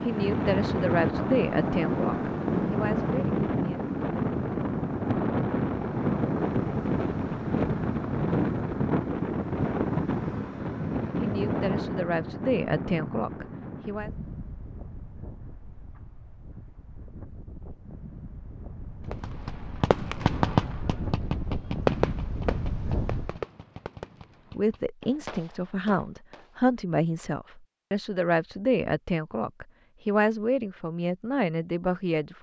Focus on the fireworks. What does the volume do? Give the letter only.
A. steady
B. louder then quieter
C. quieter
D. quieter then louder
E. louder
C.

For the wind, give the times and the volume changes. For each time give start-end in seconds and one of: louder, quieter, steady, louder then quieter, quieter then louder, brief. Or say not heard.
0.0-23.4 quieter then louder.